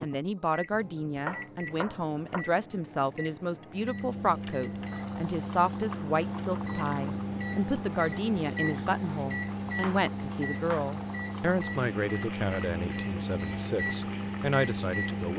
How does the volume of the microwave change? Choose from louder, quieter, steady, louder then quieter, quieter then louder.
louder.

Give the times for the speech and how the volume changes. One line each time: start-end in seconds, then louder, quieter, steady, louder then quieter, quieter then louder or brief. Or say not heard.
0.0-15.3 steady.